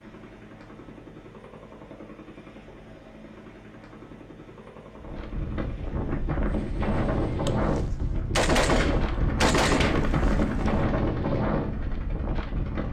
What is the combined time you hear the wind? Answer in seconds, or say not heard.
8 s.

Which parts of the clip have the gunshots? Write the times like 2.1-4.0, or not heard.
7.5-10.9.